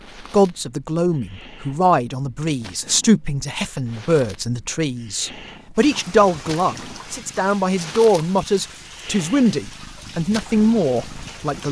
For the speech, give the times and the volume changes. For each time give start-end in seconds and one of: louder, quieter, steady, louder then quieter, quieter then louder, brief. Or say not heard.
0.3-11.6 steady.